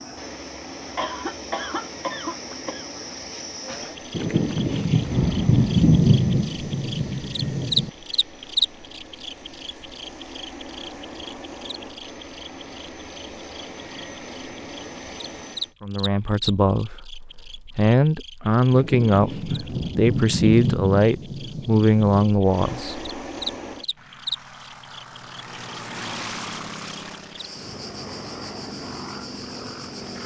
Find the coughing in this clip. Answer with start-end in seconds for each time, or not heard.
0.9-2.9.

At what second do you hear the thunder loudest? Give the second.
6 s.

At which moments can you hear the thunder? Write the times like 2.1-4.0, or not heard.
4.1-7.9, 18.7-22.4.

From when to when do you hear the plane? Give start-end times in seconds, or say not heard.
0.0-15.8, 22.4-30.2.